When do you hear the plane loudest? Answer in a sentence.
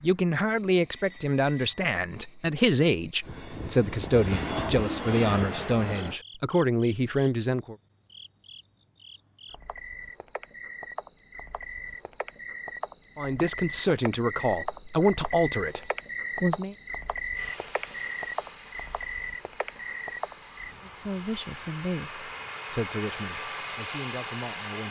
The loudest moment of the plane is at 5 seconds.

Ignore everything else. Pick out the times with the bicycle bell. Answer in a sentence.
You can hear the bicycle bell from 0.9 to 2.0 s and from 15.2 to 16.1 s.